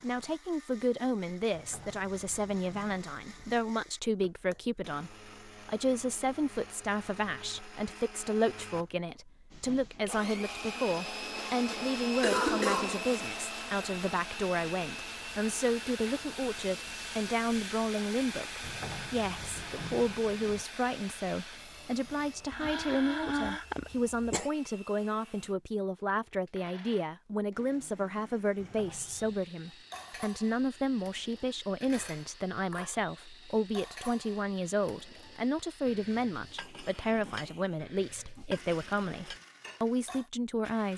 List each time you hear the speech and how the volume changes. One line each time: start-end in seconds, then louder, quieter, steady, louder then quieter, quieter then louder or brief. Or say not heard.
0.0-40.9 steady.